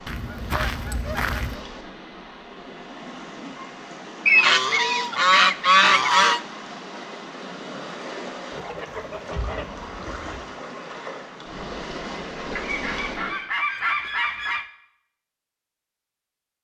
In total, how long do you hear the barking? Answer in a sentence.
The barking can't be heard in this clip.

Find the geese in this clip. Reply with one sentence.
The geese can be heard from 0.1 to 1.6 s, from 4.2 to 6.4 s, from 8.5 to 10.4 s and from 12.6 to 14.7 s.